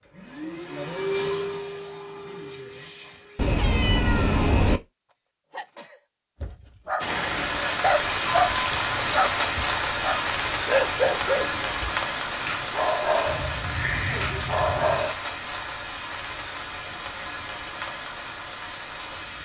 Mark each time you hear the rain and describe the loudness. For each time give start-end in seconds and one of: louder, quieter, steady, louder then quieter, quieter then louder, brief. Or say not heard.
7.0-19.4 quieter.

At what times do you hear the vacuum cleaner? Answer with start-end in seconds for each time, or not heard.
0.0-3.6.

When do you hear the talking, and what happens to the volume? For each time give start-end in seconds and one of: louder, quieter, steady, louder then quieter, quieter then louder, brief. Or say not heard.
not heard.